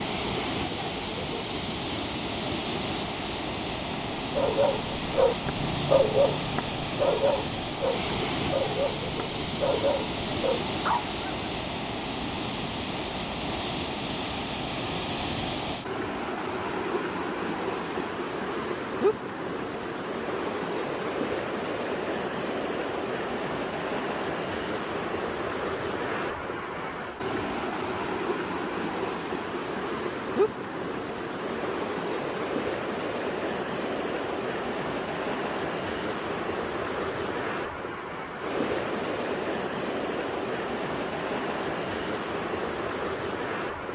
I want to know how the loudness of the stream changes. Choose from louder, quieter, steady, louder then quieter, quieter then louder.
steady.